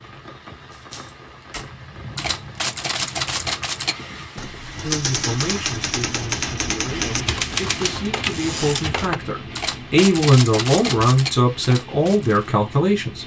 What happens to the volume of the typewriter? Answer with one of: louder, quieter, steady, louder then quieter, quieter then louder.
steady.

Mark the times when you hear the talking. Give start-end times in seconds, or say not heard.
4.8-13.2.